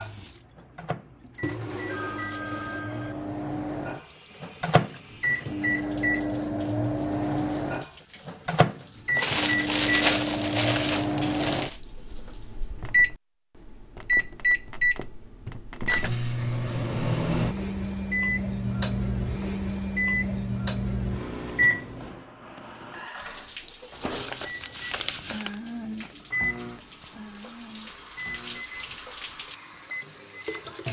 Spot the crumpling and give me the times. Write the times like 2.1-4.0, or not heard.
9.2-11.8, 24.1-25.6.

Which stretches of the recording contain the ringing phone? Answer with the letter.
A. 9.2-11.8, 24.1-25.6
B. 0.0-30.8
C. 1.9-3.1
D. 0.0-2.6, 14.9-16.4
C.